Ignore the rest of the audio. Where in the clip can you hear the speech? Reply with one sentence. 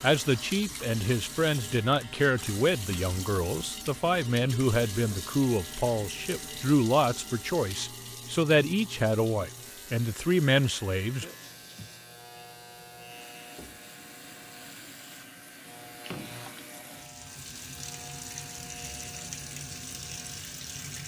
The speech can be heard from 0.0 to 11.2 s.